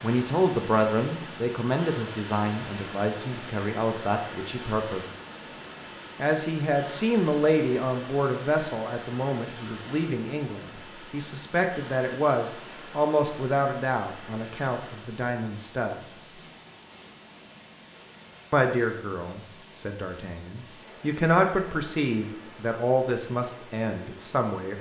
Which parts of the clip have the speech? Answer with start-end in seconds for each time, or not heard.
0.0-5.0, 6.2-16.3, 18.5-24.7.